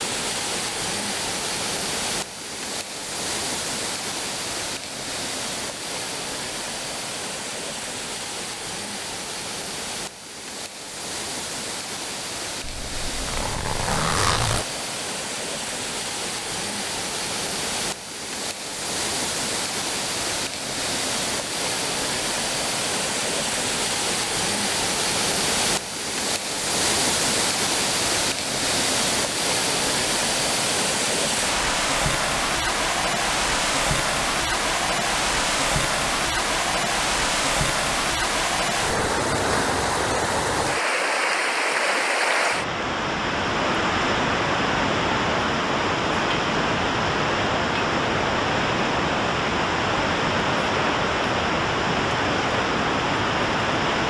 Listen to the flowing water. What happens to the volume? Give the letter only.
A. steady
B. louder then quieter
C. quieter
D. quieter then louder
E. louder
E.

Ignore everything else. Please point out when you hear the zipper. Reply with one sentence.
The zipper can be heard from 12.6 to 14.7 s.